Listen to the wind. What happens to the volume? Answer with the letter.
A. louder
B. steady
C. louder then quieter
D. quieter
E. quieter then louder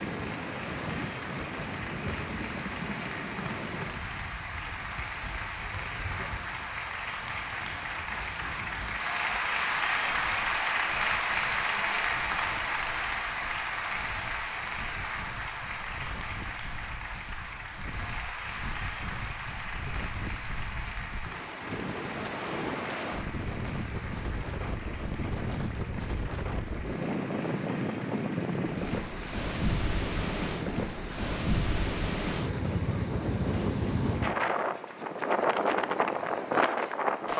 E.